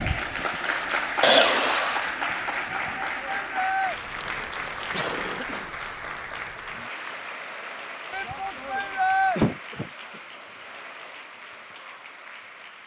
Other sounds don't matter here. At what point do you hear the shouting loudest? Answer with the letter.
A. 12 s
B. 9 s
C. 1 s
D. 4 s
B.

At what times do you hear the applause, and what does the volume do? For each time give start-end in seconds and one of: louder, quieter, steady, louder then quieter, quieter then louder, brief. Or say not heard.
0.0-12.8 quieter.